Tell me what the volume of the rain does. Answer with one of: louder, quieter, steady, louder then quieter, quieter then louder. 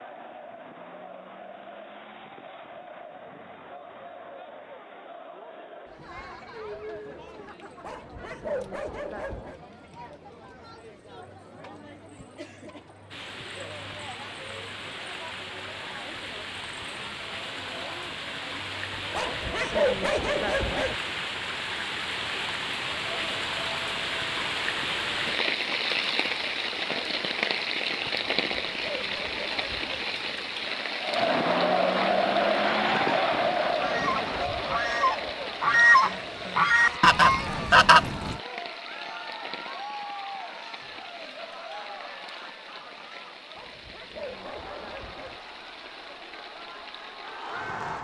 louder then quieter.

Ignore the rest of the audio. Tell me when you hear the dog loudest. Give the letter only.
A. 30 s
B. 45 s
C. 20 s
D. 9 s
C.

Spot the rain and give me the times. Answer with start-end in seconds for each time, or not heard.
13.1-47.9.